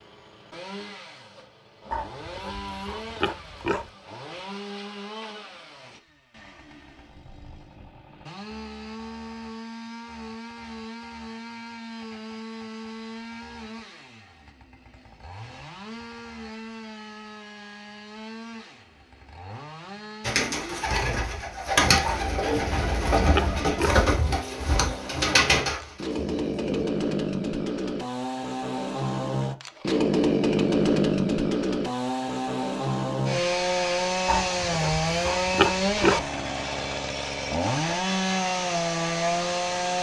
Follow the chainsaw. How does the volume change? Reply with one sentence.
The volume of the chainsaw goes up.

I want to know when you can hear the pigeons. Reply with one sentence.
You can hear the pigeons from 20.2 to 26.9 s.